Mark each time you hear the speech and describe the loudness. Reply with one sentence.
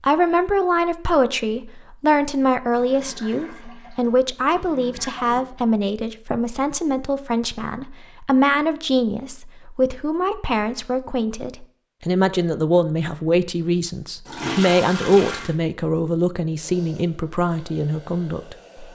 The speech can be heard from 0.0 to 18.9 s, at a steady volume.